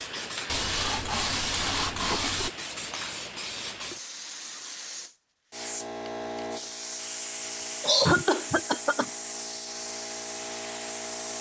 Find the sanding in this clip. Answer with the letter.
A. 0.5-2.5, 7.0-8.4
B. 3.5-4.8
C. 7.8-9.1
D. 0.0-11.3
A.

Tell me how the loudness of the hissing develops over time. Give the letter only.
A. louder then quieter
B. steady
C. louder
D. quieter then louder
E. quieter
B.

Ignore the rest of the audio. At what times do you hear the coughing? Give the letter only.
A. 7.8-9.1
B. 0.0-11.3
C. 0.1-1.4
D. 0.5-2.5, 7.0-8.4
A.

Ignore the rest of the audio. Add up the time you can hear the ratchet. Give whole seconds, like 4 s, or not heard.
not heard.